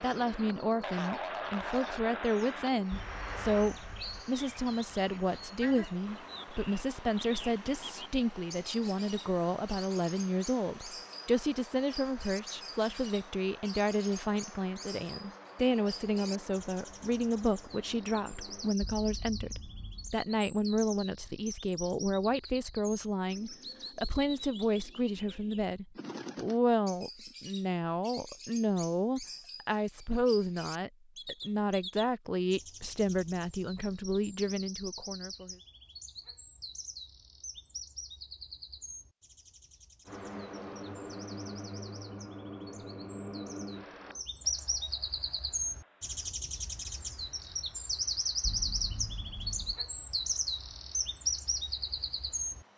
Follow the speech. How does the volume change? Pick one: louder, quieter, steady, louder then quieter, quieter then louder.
steady.